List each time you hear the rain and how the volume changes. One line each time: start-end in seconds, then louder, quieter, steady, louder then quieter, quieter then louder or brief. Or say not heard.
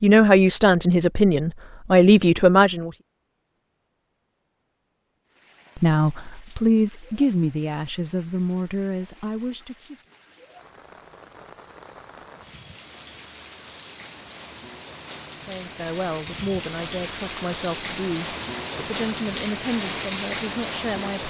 5.2-21.2 louder.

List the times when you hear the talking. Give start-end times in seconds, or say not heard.
0.0-2.9, 5.8-9.9, 15.4-21.2.